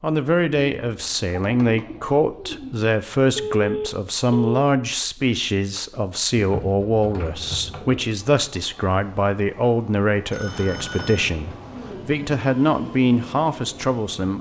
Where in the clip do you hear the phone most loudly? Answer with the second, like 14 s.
4 s.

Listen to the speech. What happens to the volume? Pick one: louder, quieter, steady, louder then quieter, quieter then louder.
steady.